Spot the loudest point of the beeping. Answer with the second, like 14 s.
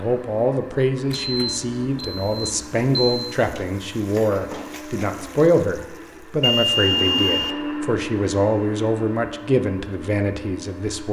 7 s.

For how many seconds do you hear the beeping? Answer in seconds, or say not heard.
3 s.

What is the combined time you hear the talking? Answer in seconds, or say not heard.
11 s.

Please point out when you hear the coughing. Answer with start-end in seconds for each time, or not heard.
not heard.